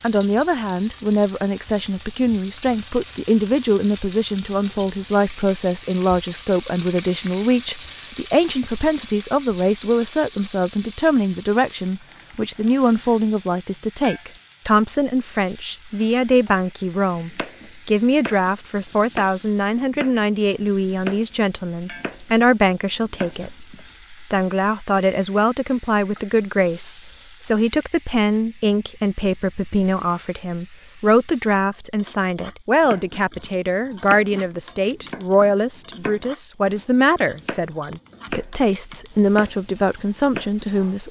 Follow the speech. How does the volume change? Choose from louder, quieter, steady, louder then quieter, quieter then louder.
steady.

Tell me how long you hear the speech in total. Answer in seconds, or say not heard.
41 s.